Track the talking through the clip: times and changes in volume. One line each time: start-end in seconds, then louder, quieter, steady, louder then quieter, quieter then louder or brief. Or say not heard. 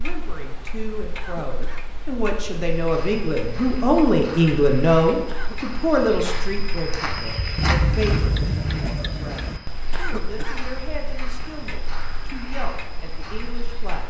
0.0-14.0 louder then quieter.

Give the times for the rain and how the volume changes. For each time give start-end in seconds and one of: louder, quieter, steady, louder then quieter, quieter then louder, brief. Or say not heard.
not heard.